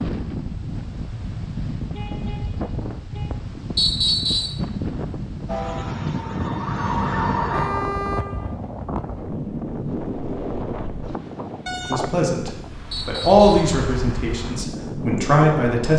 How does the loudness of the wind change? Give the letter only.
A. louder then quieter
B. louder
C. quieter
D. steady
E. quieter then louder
D.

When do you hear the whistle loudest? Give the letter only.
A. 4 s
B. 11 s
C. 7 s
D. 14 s
A.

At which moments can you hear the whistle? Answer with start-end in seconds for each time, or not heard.
3.8-4.6, 12.9-13.5.